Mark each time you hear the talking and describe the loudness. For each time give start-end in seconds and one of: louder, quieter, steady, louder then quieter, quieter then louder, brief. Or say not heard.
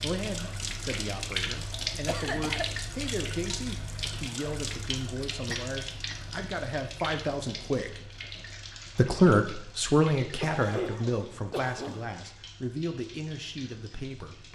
0.0-8.0 louder
8.9-14.5 quieter.